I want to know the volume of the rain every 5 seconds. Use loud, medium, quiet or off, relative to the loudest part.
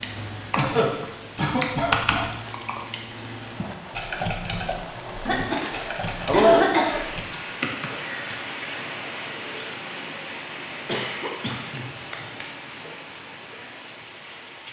medium, loud, loud.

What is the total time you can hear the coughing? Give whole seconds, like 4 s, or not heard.
5 s.